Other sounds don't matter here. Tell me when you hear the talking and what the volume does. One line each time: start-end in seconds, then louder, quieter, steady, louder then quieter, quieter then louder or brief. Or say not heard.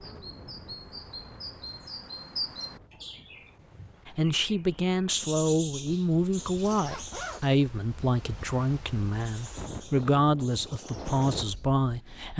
4.0-12.3 steady.